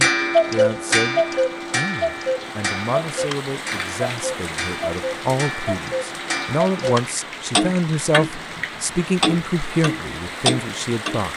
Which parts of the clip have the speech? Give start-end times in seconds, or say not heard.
0.0-11.3.